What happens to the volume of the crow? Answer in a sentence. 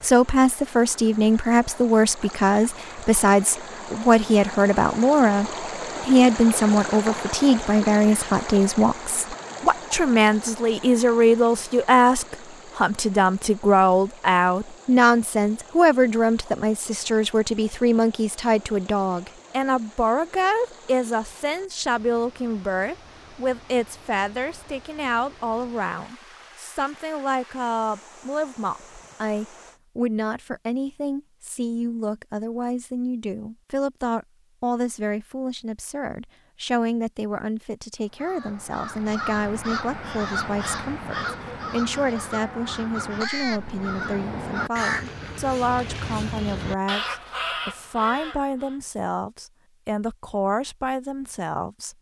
The volume of the crow stays about the same.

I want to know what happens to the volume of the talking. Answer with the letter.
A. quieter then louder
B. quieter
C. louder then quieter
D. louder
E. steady
B.